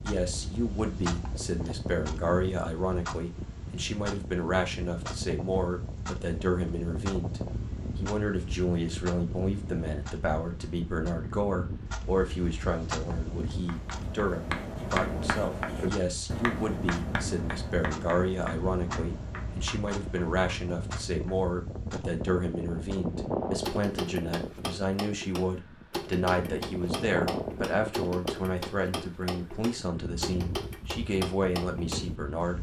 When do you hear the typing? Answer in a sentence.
The typing can't be heard in this clip.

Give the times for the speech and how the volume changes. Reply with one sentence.
You can hear the speech from 0.0 to 32.5 s, at a steady volume.